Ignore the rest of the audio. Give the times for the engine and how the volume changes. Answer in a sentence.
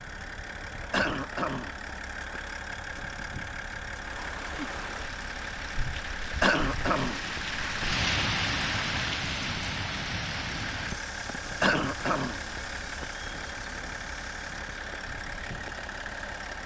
You can hear the engine from 0.0 to 16.6 s, at a steady volume.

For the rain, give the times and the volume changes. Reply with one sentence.
The rain can be heard from 4.0 to 16.6 s, getting louder then quieter.